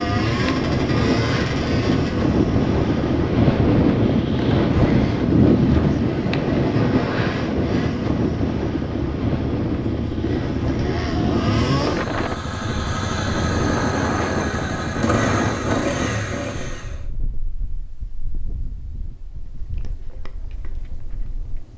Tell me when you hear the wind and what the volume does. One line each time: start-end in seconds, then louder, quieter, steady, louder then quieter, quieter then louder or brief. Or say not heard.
0.0-21.7 quieter.